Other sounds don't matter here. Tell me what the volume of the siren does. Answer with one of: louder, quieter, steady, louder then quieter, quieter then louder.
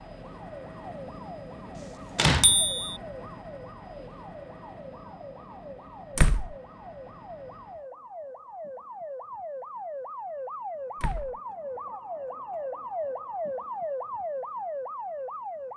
louder.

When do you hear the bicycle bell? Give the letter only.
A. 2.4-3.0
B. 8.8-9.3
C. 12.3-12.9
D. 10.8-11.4
A.